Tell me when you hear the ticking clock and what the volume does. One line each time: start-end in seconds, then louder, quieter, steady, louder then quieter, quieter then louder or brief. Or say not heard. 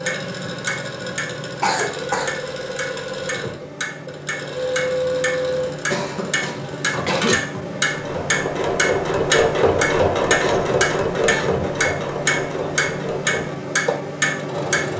0.0-14.9 louder.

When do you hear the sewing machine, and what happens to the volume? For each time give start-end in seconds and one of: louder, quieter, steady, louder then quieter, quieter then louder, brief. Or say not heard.
0.0-14.9 louder then quieter.